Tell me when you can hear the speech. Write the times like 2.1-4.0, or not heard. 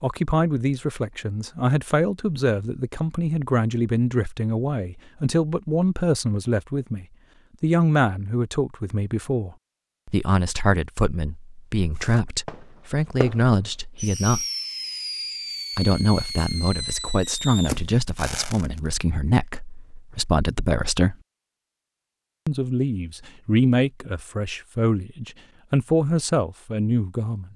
0.0-14.4, 15.8-21.1, 22.4-27.5.